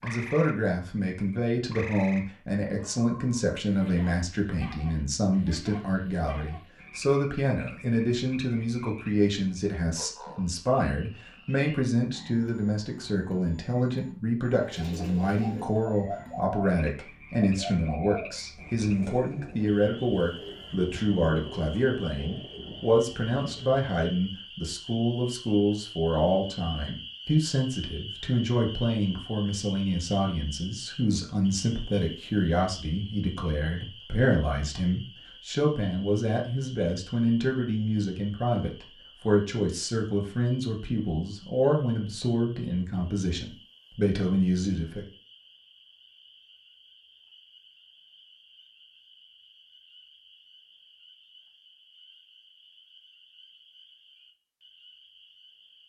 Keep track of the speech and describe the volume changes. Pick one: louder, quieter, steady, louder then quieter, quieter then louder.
steady.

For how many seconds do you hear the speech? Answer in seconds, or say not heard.
45 s.